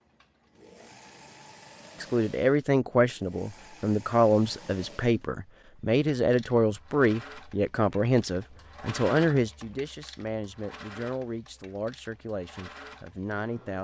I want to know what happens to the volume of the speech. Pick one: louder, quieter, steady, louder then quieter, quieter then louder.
quieter.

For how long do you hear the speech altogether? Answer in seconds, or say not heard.
12 s.